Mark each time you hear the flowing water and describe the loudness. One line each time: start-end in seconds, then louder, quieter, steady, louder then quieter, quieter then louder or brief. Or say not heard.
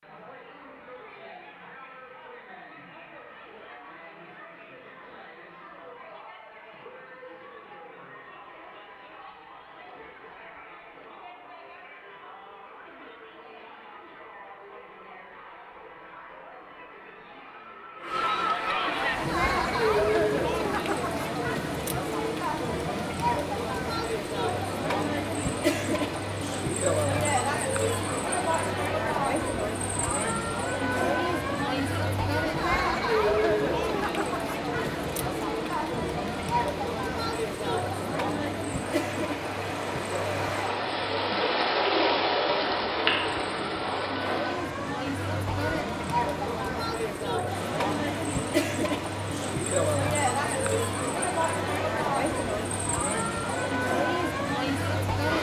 18.9-55.3 louder then quieter.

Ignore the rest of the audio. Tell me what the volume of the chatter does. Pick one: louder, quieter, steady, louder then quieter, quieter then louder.
louder.